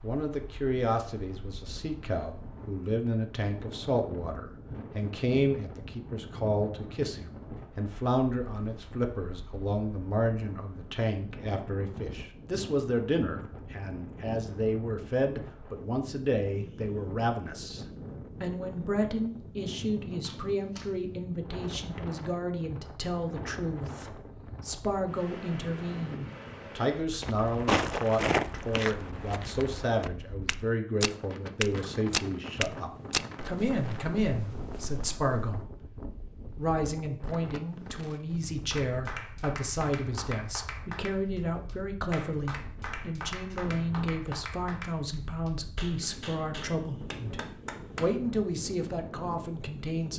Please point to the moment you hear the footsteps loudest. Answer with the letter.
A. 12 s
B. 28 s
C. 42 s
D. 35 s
B.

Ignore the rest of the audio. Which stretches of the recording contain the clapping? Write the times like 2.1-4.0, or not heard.
38.7-48.2.